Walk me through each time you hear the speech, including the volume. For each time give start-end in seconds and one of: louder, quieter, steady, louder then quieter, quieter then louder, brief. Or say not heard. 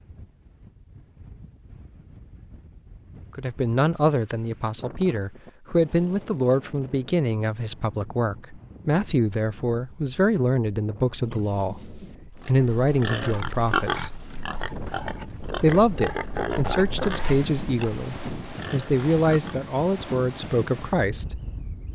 3.4-14.2 steady
15.6-21.4 steady.